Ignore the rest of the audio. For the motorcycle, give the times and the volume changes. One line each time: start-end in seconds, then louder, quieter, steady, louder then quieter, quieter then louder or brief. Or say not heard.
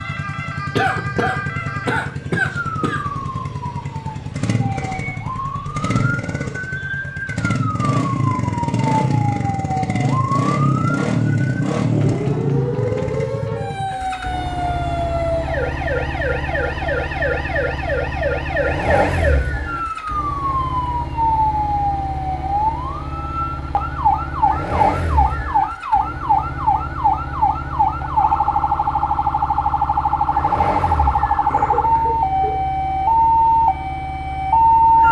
0.0-35.0 louder then quieter.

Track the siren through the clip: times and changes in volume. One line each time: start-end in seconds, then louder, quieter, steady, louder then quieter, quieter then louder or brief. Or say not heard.
0.0-35.0 louder.